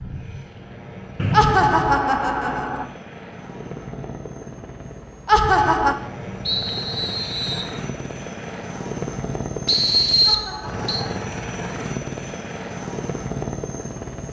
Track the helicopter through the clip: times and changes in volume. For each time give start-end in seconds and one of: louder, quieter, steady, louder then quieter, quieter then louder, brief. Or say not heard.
0.0-14.2 louder.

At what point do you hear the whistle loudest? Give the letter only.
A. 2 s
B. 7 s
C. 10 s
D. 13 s
C.